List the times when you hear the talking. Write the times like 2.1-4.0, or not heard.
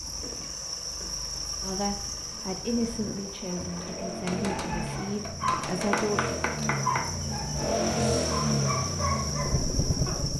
1.6-6.3.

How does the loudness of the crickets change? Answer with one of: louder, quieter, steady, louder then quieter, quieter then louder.
quieter then louder.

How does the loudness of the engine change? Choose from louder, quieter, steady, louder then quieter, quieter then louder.
louder.